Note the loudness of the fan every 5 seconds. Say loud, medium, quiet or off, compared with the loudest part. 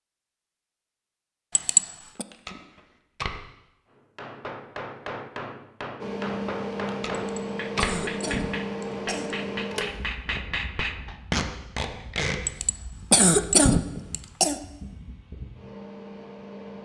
off, loud, quiet, medium.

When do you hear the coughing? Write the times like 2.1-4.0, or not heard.
1.6-2.2, 7.2-9.3, 12.4-14.6.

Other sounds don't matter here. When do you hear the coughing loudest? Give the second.
13 s.